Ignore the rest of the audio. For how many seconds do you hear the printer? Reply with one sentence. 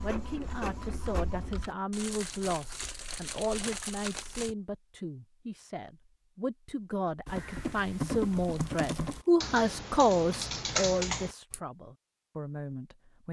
The printer can be heard for 2 seconds in total.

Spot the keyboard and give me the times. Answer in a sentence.
You can hear the keyboard from 0.2 to 1.7 s and from 7.2 to 11.6 s.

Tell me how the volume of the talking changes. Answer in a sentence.
The loudness of the talking goes up, then down.